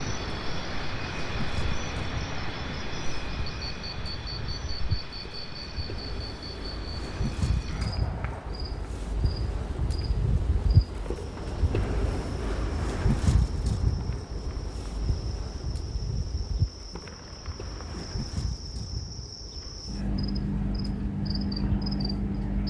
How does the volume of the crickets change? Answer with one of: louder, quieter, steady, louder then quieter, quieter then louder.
quieter then louder.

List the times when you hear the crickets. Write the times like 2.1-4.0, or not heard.
0.0-22.6.